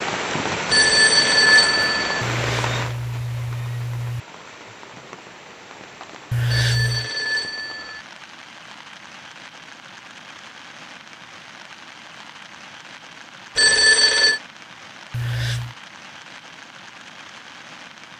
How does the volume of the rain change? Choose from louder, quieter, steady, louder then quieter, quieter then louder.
quieter.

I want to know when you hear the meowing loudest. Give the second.
7 s.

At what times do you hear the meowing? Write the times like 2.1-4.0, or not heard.
2.2-4.2, 6.3-7.1, 15.1-15.8.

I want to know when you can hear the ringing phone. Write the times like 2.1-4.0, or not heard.
0.7-2.2, 6.5-8.1, 13.6-14.4.